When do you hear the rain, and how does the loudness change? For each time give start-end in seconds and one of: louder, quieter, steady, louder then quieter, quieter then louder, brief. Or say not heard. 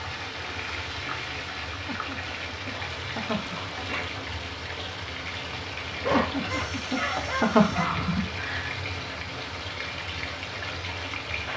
0.0-11.5 steady.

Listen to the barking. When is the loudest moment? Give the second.
6 s.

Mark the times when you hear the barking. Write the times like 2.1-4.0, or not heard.
6.0-7.9.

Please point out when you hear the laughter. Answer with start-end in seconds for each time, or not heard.
1.9-3.7, 6.1-8.8.